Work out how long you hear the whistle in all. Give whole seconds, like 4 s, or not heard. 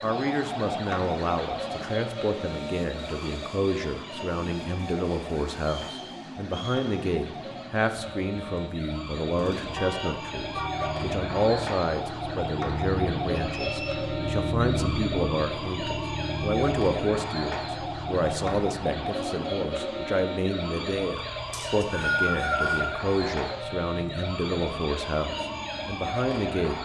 3 s.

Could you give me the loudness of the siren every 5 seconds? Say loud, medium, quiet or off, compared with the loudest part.
loud, medium, loud, loud, loud, loud.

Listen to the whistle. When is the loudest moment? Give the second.
22 s.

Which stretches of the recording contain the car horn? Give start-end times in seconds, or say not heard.
9.8-11.1.